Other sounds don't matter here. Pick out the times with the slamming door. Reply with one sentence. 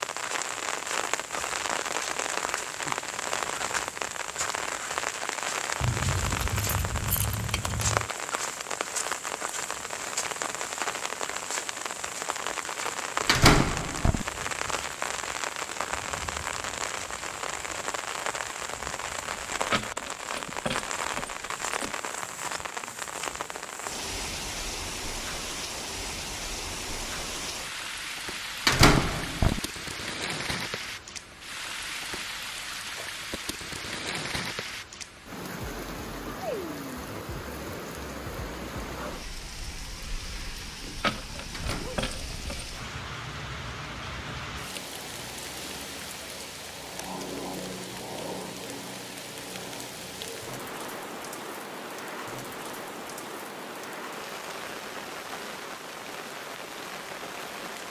You can hear the slamming door from 13.2 to 14.2 s, from 28.6 to 29.6 s and from 41.5 to 42.5 s.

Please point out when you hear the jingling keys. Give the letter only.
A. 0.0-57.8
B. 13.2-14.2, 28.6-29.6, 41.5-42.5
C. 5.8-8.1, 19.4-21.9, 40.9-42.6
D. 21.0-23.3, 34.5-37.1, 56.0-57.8
C.